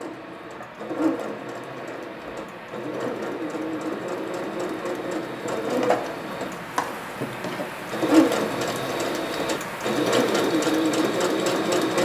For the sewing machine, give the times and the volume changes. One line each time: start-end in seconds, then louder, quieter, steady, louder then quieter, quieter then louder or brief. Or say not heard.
0.0-12.0 louder.